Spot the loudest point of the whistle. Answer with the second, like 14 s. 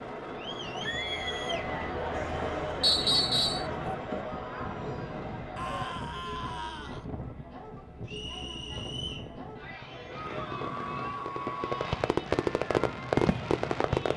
3 s.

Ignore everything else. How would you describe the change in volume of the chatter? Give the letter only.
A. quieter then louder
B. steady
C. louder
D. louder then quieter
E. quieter
E.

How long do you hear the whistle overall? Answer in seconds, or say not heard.
2 s.